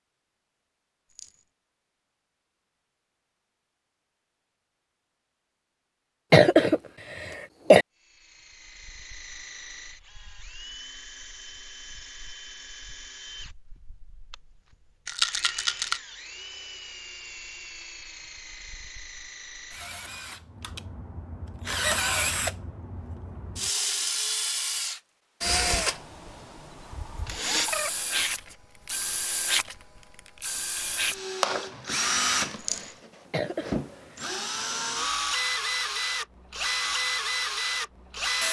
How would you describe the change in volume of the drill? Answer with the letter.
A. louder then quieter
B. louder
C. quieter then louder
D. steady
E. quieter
B.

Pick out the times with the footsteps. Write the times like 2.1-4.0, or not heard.
not heard.